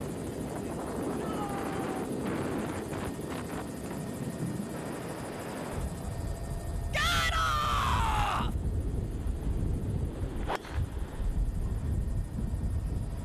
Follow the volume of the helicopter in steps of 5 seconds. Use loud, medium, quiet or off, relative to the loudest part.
loud, medium, medium.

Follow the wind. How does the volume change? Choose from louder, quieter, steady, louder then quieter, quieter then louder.
steady.